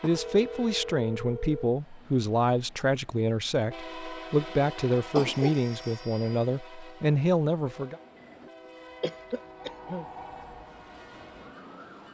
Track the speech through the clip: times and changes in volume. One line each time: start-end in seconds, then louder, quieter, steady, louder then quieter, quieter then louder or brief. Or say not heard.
0.0-8.0 steady.